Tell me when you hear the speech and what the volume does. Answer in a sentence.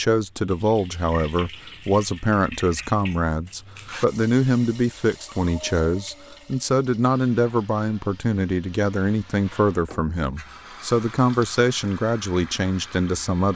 You can hear the speech from 0.0 to 13.5 s, at a steady volume.